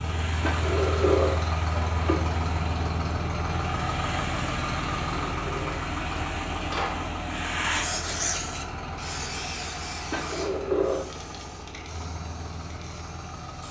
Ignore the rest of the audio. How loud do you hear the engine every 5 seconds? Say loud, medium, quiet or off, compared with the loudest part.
loud, loud, medium.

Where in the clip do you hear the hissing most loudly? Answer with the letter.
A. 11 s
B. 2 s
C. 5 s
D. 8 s
D.